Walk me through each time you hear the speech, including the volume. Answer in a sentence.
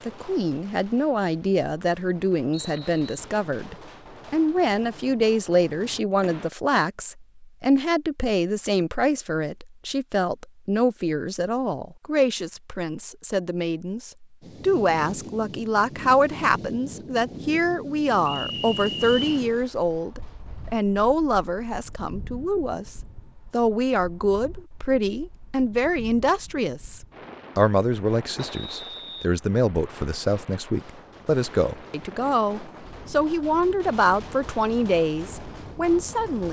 You can hear the speech from 0.0 to 36.4 s, at a steady volume.